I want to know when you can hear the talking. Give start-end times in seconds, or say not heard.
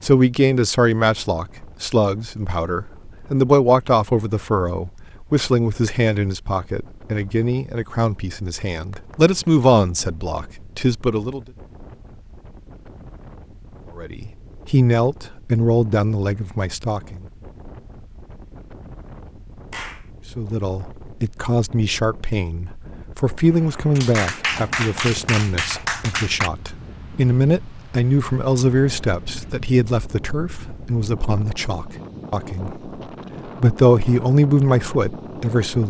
0.0-11.4, 13.9-17.2, 20.4-35.8.